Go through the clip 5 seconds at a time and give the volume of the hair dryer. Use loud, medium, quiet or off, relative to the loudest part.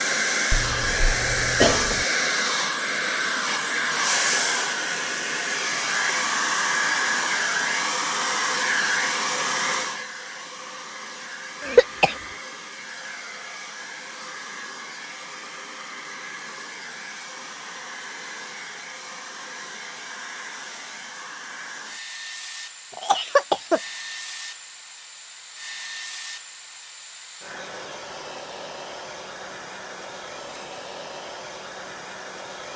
loud, loud, quiet, quiet, quiet, quiet, quiet.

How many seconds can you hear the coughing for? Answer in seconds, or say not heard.
3 s.